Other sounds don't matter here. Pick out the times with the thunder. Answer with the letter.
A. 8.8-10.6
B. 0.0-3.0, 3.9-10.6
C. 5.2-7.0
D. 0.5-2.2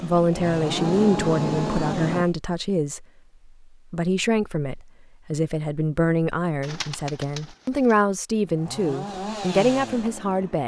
D.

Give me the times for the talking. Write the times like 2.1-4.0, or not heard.
0.0-3.0, 3.9-10.6.